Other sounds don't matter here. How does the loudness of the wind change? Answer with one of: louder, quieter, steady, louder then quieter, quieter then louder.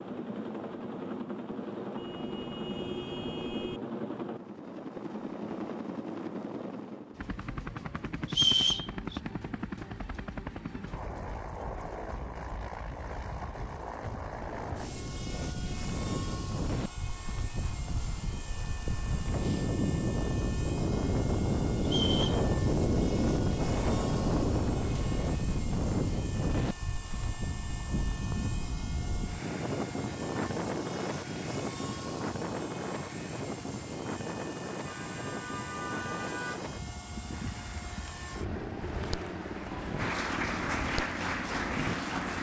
louder then quieter.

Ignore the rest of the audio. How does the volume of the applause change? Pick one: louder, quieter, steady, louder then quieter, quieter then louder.
louder.